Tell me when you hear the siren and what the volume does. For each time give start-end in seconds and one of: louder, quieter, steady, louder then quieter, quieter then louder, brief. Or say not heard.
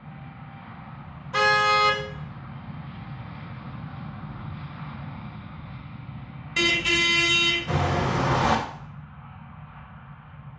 not heard.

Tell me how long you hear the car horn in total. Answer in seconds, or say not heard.
3 s.